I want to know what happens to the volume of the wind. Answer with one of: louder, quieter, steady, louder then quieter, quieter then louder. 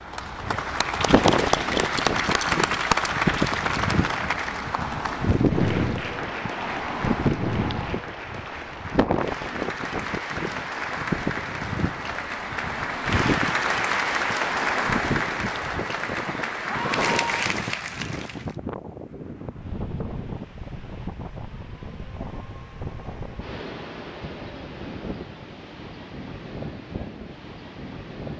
quieter.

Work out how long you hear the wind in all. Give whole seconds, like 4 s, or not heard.
28 s.